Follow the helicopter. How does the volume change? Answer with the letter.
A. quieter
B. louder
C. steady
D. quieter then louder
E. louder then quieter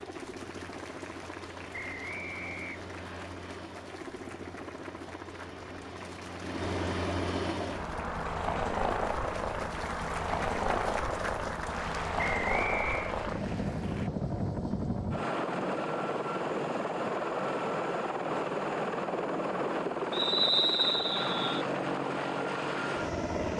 B.